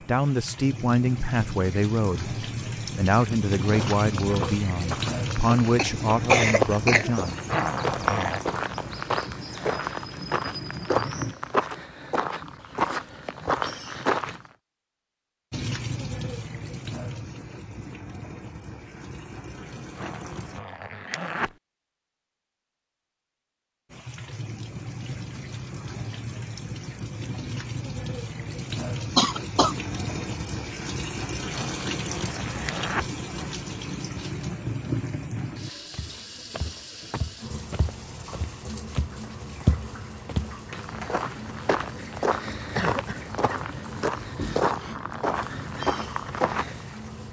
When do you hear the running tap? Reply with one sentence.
You can hear the running tap from 0.0 to 11.3 s, from 15.5 to 20.6 s and from 23.9 to 47.2 s.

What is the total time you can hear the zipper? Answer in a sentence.
You can hear the zipper for 4 seconds altogether.